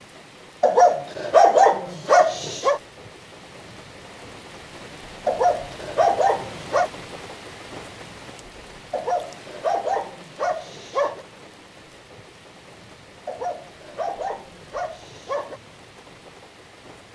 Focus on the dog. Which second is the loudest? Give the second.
2 s.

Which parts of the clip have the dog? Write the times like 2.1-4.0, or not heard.
0.6-2.8, 5.2-6.9, 8.9-11.2, 13.2-15.6.